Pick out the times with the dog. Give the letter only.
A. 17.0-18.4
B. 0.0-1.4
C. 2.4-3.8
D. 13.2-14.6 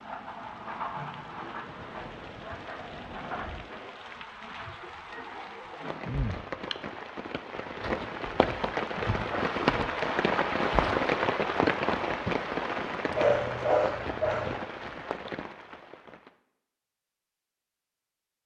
D.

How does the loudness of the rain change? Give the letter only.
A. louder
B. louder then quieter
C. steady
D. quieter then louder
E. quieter
B.